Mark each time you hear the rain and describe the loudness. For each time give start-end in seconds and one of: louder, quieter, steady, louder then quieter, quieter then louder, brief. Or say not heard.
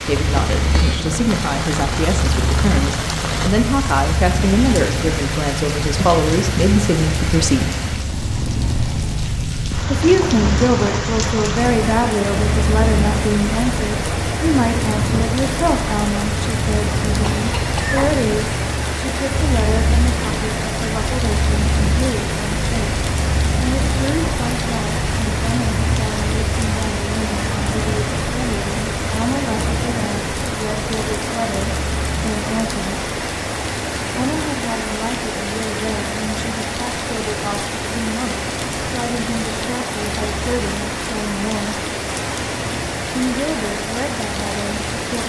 0.0-45.2 steady.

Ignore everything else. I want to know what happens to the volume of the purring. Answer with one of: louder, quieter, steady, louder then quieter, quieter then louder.
quieter.